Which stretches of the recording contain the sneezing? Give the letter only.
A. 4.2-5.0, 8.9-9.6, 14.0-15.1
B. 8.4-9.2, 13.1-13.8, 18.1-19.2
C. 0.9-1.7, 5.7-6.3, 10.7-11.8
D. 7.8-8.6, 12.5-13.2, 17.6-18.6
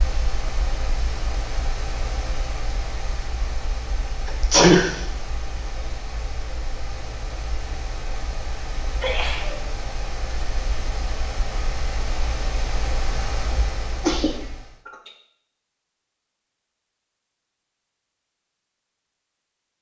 A.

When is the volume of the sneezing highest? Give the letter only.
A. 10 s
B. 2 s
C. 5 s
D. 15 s
C.